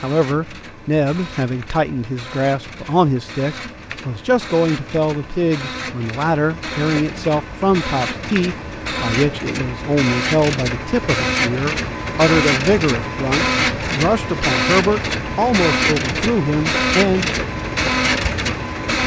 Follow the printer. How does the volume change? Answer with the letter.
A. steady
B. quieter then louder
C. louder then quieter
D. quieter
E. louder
E.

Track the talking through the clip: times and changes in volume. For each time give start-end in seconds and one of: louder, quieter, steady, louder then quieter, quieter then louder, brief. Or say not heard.
0.0-17.2 steady.